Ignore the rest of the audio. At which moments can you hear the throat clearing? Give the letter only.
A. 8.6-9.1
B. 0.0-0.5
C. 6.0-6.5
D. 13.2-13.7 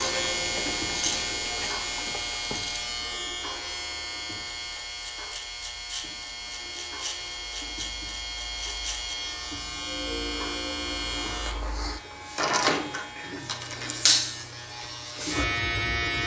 D.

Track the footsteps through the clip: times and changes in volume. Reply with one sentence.
The footsteps can't be heard in this clip.